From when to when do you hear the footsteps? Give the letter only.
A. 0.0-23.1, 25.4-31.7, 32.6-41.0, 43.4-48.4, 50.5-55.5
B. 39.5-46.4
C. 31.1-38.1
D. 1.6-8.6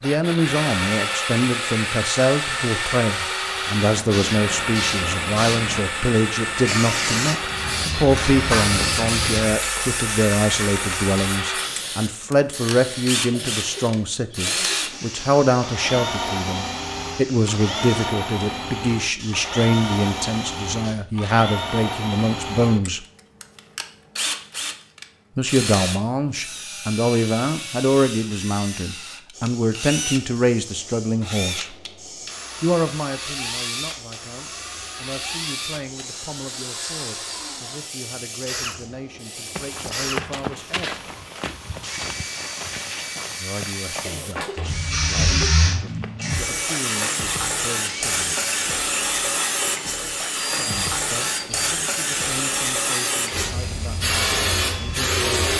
B.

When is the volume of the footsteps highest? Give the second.
40 s.